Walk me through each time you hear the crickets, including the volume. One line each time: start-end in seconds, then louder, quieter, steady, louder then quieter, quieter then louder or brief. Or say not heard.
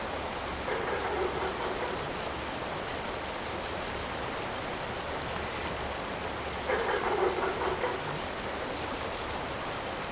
0.0-10.0 steady.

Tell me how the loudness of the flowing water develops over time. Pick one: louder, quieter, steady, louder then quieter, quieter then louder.
steady.